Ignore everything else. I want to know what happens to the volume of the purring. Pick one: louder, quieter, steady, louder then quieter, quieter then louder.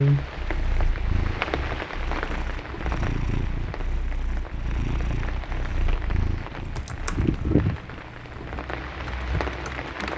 steady.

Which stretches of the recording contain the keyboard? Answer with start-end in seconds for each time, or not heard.
6.6-10.1.